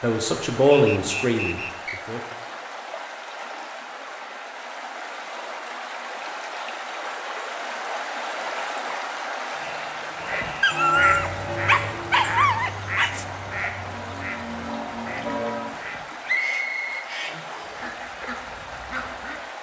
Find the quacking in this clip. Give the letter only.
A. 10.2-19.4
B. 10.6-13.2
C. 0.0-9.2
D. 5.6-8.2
A.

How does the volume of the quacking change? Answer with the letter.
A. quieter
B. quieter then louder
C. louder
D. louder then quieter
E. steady
A.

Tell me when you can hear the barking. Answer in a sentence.
The barking can be heard from 10.6 to 13.2 s.